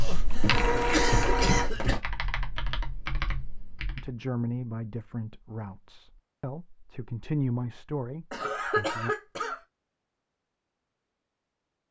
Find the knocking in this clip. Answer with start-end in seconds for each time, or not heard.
not heard.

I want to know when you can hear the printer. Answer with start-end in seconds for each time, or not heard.
0.2-1.7.